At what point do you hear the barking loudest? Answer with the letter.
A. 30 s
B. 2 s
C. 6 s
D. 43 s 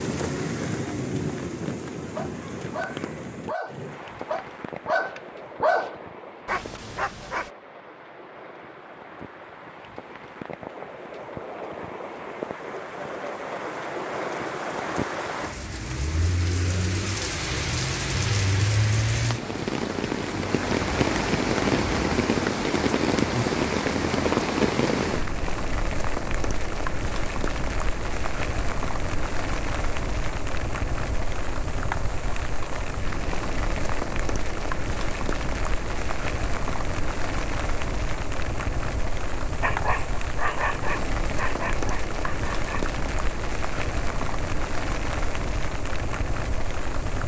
C.